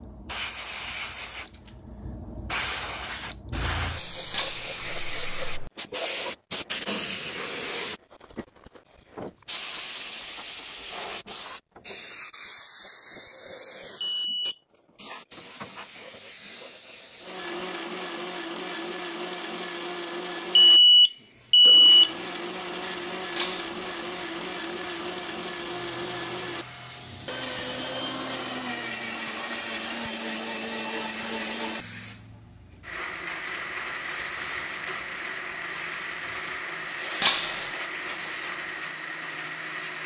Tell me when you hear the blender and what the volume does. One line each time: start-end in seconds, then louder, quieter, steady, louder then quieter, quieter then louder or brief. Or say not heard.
17.2-40.0 steady.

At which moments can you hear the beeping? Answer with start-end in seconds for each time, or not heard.
14.1-14.6, 20.6-22.1.